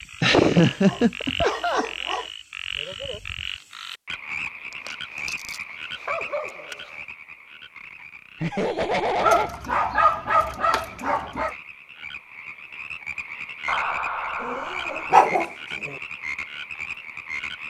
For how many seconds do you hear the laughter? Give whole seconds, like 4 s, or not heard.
4 s.